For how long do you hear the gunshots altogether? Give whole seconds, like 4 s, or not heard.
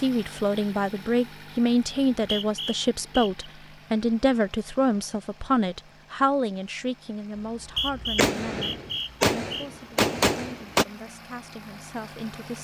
3 s.